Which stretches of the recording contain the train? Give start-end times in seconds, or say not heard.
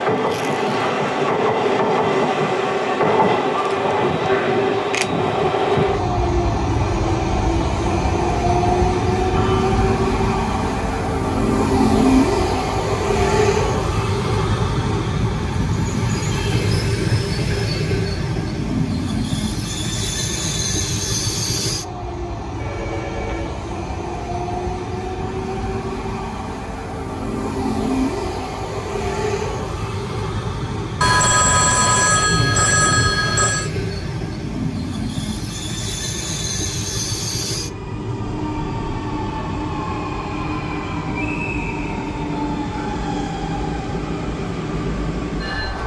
0.0-45.8.